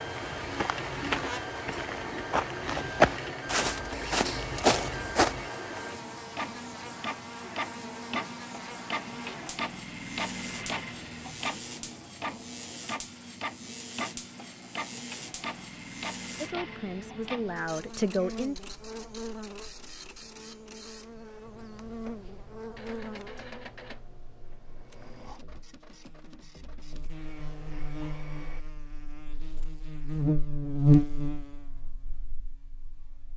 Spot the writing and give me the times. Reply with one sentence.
The writing can't be heard in this clip.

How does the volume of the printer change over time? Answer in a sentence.
The loudness of the printer goes down.